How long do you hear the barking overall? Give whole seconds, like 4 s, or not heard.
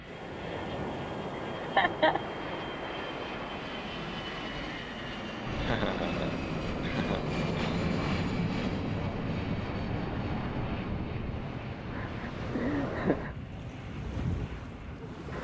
not heard.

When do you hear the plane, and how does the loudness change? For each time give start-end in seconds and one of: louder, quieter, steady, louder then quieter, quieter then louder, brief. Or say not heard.
0.0-15.3 louder then quieter.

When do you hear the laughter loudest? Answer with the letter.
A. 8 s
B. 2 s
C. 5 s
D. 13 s
B.